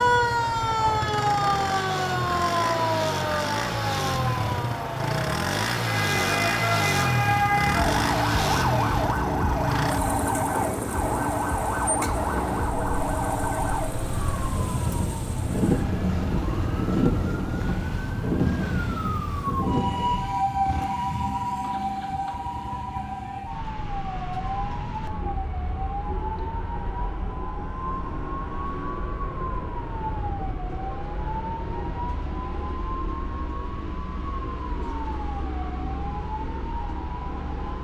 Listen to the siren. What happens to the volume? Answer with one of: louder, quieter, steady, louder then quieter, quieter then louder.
quieter.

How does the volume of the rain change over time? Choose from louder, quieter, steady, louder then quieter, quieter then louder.
louder.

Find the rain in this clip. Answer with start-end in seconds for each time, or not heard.
0.0-20.4.